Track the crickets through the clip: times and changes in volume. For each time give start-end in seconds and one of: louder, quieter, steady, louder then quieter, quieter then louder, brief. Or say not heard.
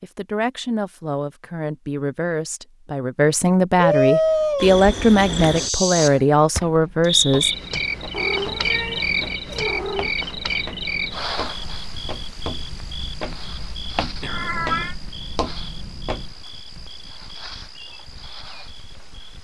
4.5-19.3 quieter.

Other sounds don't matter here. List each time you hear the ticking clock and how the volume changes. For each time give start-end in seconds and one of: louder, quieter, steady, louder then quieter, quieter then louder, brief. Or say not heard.
not heard.